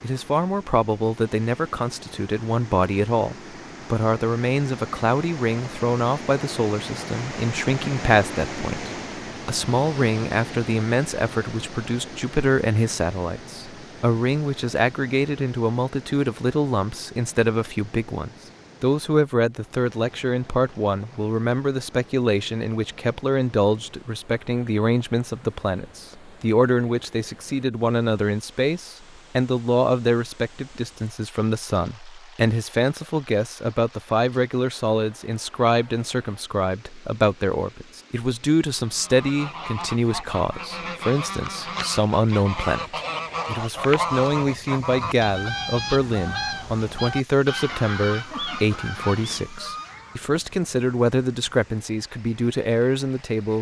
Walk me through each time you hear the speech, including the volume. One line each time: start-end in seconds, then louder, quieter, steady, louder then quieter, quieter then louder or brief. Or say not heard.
0.0-53.5 steady.